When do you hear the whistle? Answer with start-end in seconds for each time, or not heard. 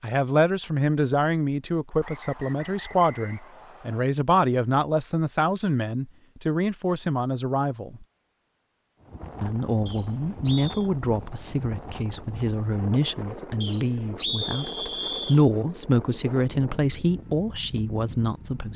2.0-4.0, 9.8-10.9, 13.6-15.4.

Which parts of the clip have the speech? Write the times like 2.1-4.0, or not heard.
0.0-8.1, 9.4-18.7.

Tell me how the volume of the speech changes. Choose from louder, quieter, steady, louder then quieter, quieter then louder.
steady.